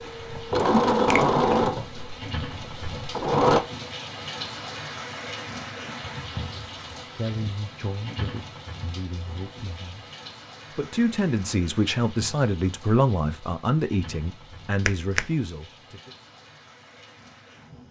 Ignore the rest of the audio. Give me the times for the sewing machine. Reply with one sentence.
You can hear the sewing machine from 0.0 to 3.6 s.